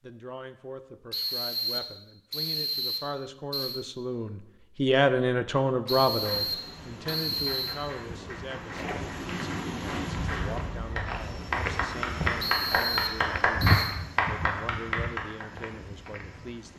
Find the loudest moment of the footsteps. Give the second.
14 s.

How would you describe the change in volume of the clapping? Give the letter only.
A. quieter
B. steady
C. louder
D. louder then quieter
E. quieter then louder
C.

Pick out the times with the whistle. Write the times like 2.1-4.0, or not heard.
1.1-3.8, 5.8-7.8, 12.4-13.9.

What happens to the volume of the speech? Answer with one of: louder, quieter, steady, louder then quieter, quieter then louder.
louder then quieter.